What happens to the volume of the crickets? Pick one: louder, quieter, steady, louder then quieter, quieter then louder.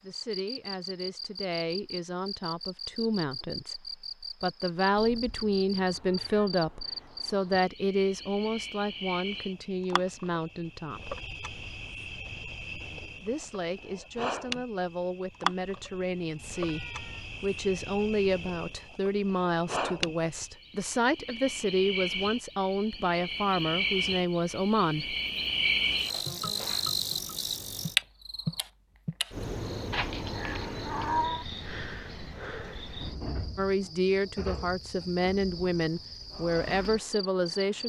louder then quieter.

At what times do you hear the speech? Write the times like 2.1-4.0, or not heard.
0.0-11.2, 13.2-16.8, 17.4-25.1, 33.5-37.8.